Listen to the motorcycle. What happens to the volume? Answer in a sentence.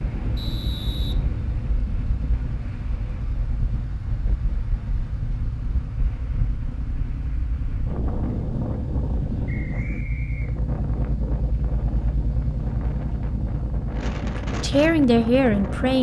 The volume of the motorcycle goes up.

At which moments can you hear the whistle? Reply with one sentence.
The whistle can be heard from 0.3 to 1.1 s and from 9.4 to 10.5 s.